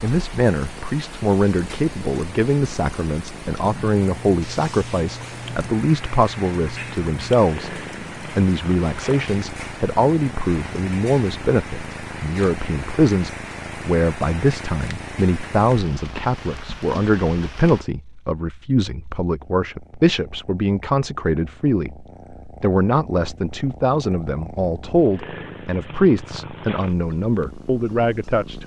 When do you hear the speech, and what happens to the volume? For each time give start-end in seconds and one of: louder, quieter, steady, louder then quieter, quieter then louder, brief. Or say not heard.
0.0-28.6 steady.